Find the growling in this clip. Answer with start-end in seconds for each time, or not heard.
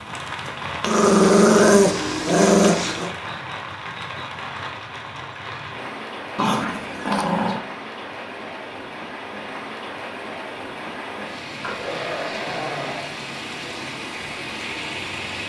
0.8-3.1, 6.3-7.6, 11.6-13.1.